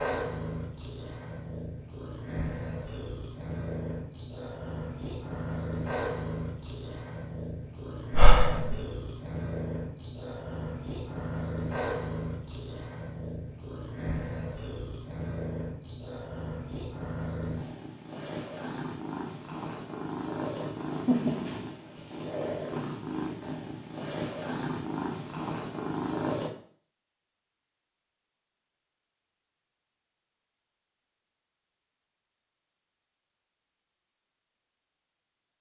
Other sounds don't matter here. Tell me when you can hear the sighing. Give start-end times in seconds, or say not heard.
8.1-8.8.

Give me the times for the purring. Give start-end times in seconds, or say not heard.
0.0-26.5.